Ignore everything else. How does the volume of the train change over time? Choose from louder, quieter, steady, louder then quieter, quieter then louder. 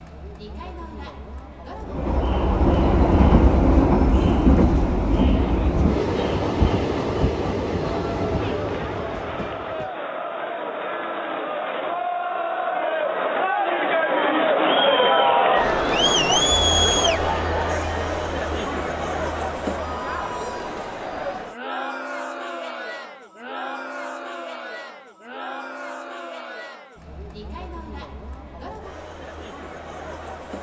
quieter.